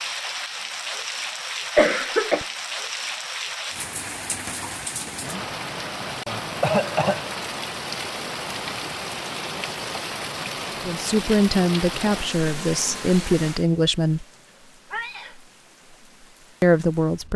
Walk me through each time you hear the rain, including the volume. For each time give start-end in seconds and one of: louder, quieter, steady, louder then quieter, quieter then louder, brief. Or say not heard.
0.0-17.3 quieter.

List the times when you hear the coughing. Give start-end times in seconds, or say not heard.
1.8-2.5, 6.6-7.2, 14.9-15.3.